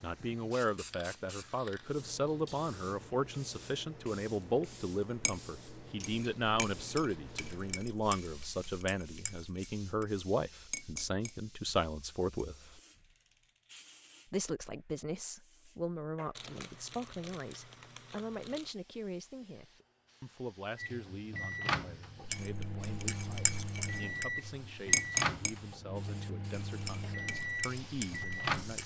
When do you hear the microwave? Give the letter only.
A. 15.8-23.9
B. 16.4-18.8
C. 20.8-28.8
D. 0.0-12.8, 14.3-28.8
C.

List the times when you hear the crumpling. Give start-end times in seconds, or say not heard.
16.4-18.8.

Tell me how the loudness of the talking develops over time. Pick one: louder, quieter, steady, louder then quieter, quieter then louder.
quieter.